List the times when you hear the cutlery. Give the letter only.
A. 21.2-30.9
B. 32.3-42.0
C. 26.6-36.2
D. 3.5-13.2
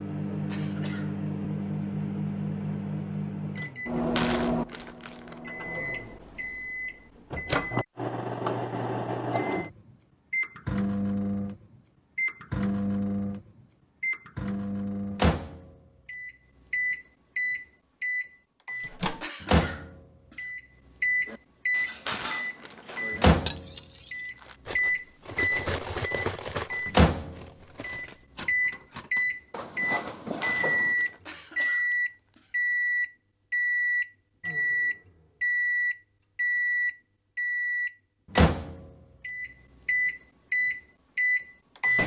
A.